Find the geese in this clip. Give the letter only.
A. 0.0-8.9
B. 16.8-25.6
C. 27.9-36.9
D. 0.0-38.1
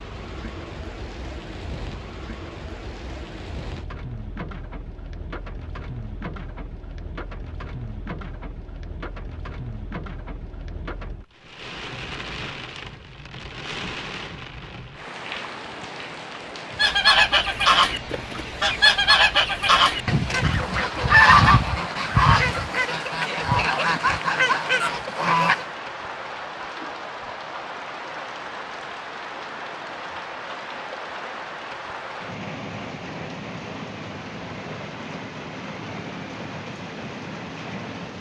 B.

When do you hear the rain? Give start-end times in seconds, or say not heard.
0.0-38.1.